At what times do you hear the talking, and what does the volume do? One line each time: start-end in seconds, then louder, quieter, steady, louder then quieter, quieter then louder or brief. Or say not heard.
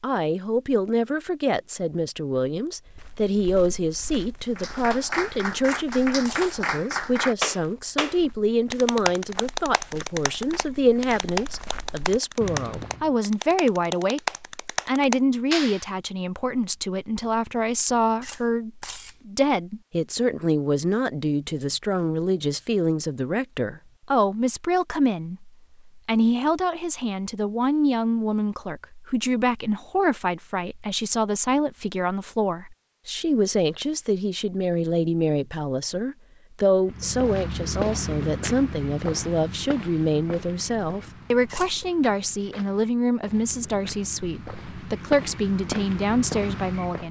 0.0-47.0 steady.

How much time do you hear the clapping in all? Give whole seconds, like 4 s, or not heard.
11 s.